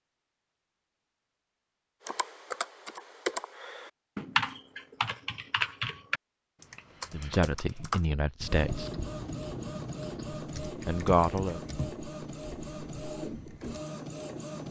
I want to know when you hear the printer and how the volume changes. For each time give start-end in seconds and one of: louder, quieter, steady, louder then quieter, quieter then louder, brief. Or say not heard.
8.4-14.6 steady.